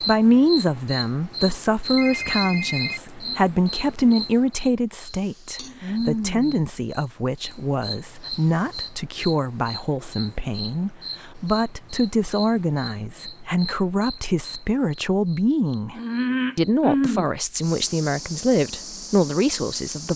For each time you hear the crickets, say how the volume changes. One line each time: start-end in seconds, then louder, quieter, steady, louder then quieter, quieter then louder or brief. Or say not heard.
0.0-20.1 quieter then louder.